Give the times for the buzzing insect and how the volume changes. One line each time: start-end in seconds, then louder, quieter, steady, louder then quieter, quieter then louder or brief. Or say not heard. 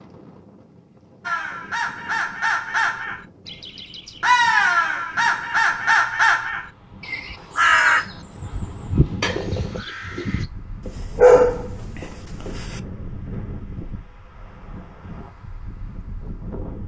not heard.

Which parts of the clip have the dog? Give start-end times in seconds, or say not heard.
10.8-12.8.